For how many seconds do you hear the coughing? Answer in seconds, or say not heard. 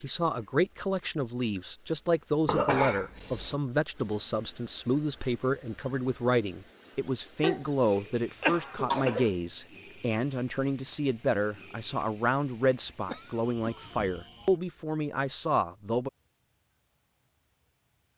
4 s.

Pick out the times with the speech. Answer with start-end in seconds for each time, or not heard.
0.0-16.1.